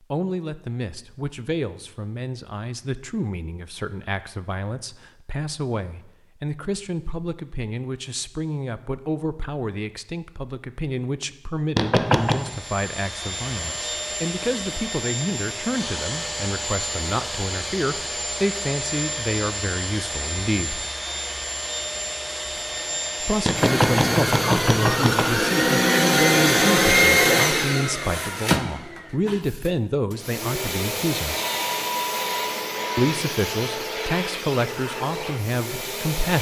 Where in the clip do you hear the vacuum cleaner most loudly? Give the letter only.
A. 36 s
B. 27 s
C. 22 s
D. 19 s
B.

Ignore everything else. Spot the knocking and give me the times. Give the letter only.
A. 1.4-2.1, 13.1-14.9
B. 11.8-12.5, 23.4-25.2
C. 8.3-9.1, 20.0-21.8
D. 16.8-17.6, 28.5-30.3
B.